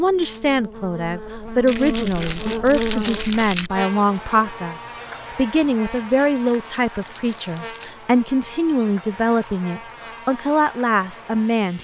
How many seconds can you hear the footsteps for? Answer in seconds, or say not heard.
not heard.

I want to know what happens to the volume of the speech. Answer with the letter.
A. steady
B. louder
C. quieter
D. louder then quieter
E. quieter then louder
A.